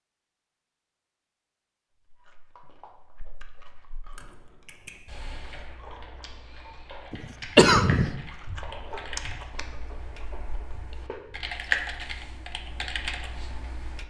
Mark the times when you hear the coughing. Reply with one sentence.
You can hear the coughing from 7.1 to 8.1 s.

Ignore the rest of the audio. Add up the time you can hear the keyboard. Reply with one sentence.
The keyboard can be heard for 10 seconds in total.